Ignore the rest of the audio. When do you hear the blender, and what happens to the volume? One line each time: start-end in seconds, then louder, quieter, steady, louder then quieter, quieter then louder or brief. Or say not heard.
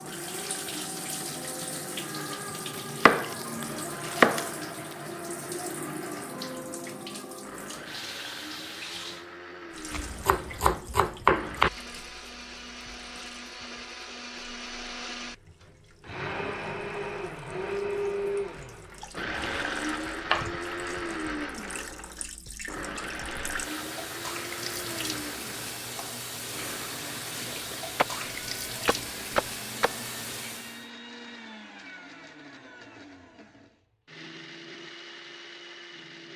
0.0-36.3 louder then quieter.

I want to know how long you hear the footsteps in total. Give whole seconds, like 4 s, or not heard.
not heard.